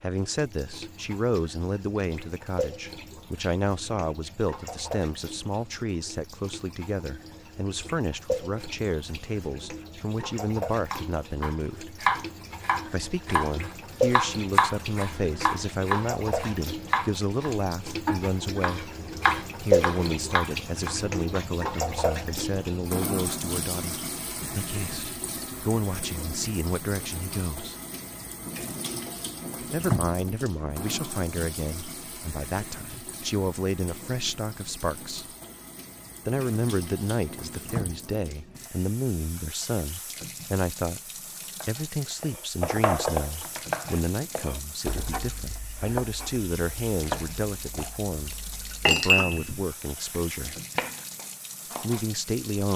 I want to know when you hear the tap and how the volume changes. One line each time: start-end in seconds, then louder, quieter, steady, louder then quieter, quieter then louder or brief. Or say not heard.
0.0-52.7 louder then quieter.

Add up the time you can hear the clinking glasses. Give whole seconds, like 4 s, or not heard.
2 s.